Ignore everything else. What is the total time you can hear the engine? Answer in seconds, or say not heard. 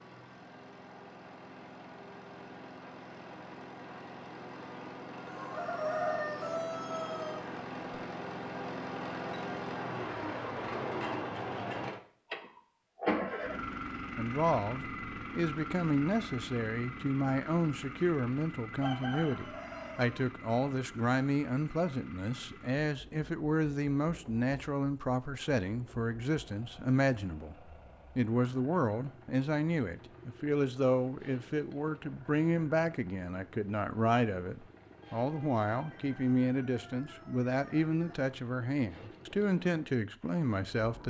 41 s.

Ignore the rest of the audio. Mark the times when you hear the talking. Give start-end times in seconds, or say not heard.
14.2-41.0.